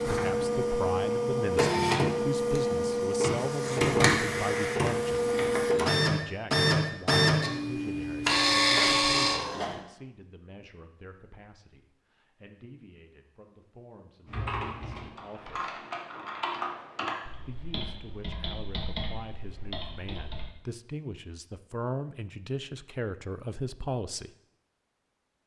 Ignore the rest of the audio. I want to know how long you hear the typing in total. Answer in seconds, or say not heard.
6 s.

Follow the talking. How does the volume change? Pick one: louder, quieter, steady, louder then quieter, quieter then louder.
quieter then louder.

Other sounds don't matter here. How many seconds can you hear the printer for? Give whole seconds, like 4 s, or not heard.
10 s.